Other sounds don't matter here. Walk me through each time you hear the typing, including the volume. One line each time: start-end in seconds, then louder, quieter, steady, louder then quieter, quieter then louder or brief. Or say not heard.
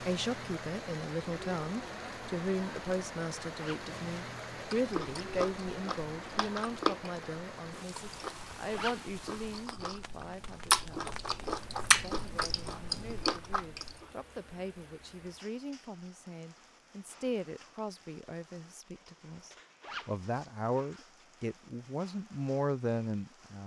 not heard.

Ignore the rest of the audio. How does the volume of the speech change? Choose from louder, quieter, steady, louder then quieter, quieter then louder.
quieter then louder.